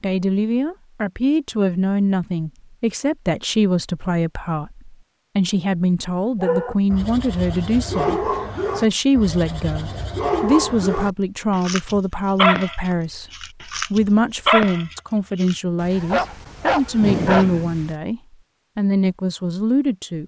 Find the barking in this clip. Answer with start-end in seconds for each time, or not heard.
6.4-17.9.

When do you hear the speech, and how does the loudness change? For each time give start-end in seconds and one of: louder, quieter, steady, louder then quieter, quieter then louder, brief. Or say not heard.
0.0-20.2 steady.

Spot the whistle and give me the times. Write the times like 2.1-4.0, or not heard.
not heard.